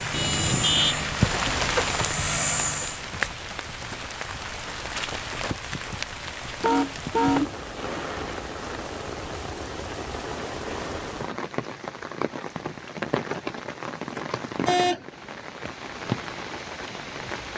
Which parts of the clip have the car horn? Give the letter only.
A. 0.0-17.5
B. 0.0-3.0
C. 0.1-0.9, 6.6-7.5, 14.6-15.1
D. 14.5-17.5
C.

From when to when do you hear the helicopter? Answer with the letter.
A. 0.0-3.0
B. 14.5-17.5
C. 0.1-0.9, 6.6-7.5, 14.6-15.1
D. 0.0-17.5
A.